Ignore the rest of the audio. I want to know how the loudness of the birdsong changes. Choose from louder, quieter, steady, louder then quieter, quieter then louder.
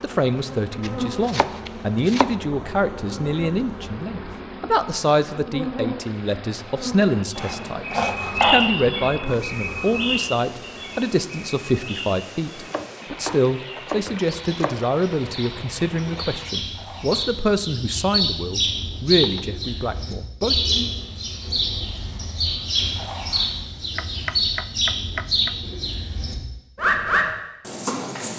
quieter then louder.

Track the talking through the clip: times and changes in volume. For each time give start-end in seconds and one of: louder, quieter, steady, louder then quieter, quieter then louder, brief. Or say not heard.
0.0-20.6 steady.